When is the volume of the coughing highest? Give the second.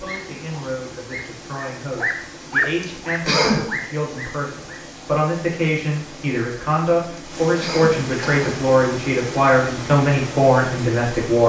3 s.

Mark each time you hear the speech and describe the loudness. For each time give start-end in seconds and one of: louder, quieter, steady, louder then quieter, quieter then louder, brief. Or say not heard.
0.0-11.4 louder.